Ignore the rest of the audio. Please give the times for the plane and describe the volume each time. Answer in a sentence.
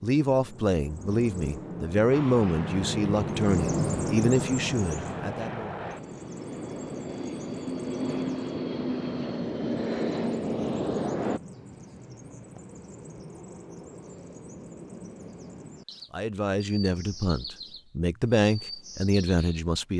You can hear the plane from 2.1 to 11.4 s, getting louder.